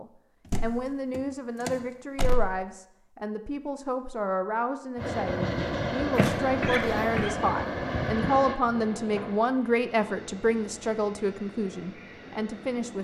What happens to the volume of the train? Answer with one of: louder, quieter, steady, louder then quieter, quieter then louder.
quieter.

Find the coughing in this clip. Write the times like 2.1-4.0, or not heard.
6.2-7.3.